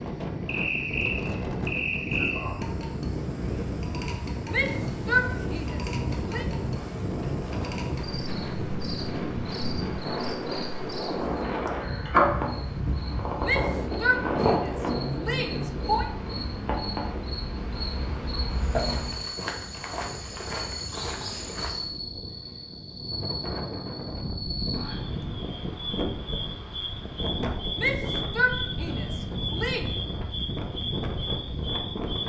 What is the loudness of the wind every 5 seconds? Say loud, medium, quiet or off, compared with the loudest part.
loud, loud, loud, medium, medium, loud, loud.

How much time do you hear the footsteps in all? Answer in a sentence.
The footsteps can be heard for 3 seconds in total.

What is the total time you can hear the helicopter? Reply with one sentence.
The helicopter can't be heard in this clip.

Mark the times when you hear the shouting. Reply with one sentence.
The shouting can be heard from 4.5 to 6.5 s, from 13.4 to 16.1 s and from 27.8 to 29.9 s.